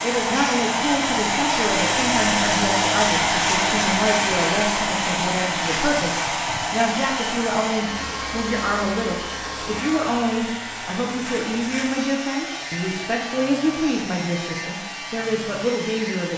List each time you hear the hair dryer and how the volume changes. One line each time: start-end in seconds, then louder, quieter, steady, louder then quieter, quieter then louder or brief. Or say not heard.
0.0-16.3 quieter.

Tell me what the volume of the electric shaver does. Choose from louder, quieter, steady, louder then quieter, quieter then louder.
quieter.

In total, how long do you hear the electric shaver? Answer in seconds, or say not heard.
16 s.